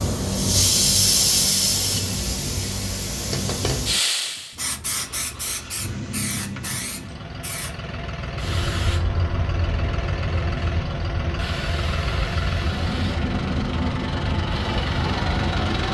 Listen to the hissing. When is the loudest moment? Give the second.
1 s.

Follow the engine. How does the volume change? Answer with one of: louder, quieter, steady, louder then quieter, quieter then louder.
louder.